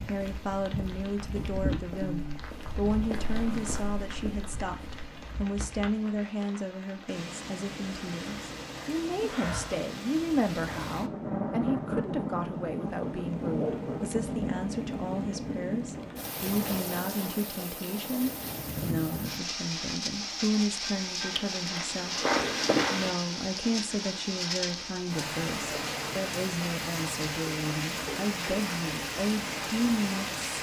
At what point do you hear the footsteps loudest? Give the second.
23 s.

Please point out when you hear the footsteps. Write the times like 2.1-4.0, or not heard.
0.0-5.3, 21.3-23.1.